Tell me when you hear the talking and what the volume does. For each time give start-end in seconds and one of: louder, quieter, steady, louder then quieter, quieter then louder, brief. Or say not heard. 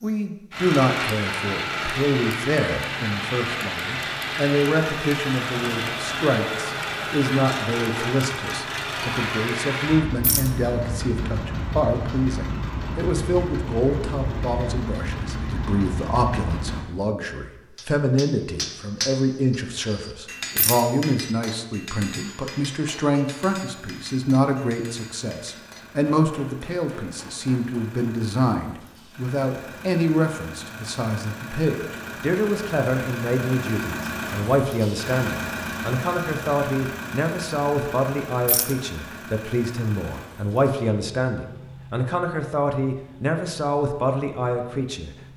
0.0-45.3 steady.